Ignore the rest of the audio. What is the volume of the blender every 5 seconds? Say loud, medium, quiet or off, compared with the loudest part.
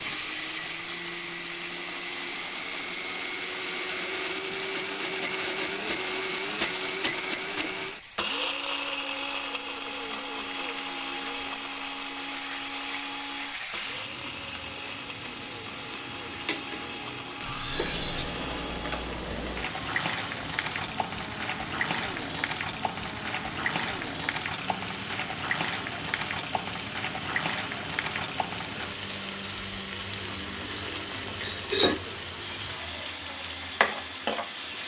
loud, loud, medium, medium, medium, medium, medium.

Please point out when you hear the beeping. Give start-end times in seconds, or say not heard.
not heard.